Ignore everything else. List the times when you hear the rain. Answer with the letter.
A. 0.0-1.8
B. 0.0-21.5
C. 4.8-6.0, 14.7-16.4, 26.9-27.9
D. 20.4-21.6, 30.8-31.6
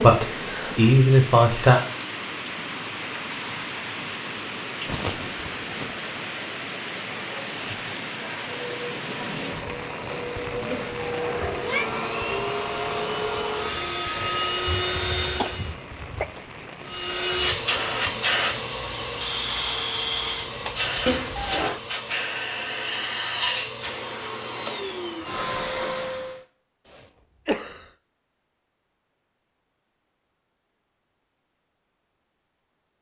B.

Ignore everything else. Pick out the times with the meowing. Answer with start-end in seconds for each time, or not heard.
10.7-11.9, 21.1-21.8.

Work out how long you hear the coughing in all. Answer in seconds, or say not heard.
4 s.